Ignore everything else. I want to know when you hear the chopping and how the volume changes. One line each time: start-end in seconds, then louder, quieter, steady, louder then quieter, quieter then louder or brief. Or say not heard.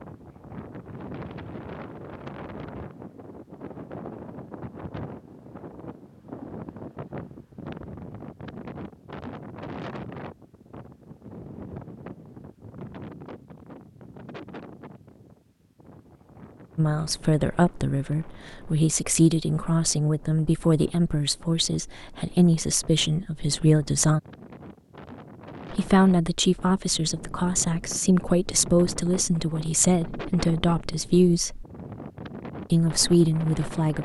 not heard.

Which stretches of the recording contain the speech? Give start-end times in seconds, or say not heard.
16.8-24.2, 25.7-31.6, 32.7-33.9.